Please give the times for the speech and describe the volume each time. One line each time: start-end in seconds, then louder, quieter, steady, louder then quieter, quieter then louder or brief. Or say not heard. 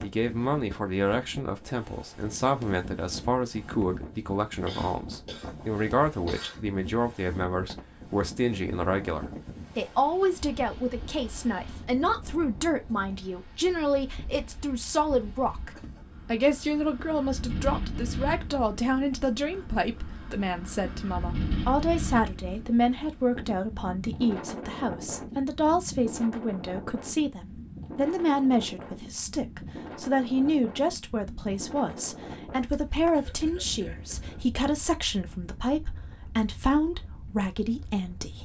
0.0-38.3 steady.